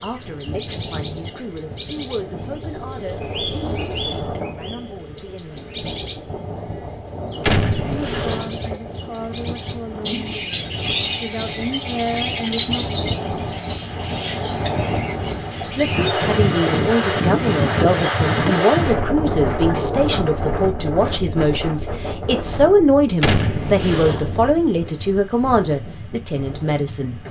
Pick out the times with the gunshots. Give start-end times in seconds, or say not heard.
7.4-8.8, 23.2-24.6.